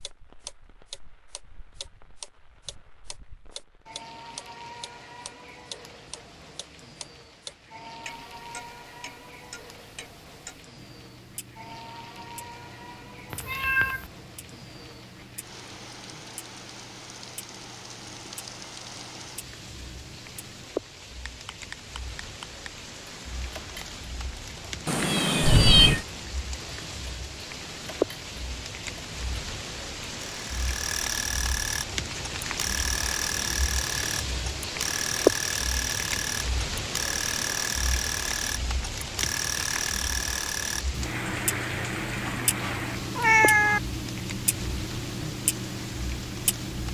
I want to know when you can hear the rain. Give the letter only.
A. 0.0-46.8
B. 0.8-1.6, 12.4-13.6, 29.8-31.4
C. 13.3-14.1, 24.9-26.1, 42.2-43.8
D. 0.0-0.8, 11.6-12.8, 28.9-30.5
A.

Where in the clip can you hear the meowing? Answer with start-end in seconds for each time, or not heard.
13.3-14.1, 24.9-26.1, 42.2-43.8.